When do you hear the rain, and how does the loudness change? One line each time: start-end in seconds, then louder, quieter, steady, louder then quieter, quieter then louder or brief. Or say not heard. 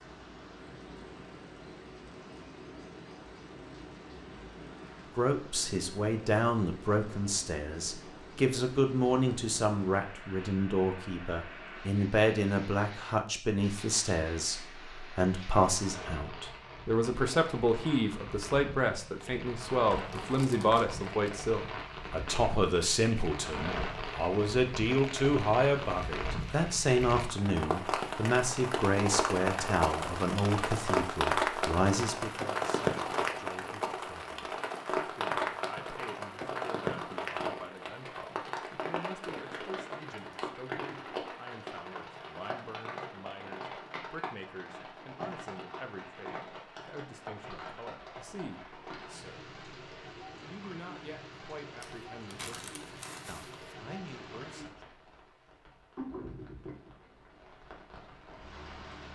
0.0-59.1 louder then quieter.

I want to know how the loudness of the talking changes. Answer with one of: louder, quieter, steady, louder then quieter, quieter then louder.
quieter.